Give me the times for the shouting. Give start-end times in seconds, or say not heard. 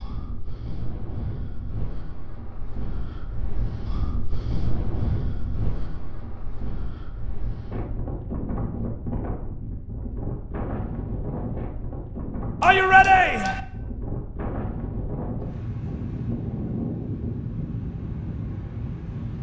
12.6-13.6.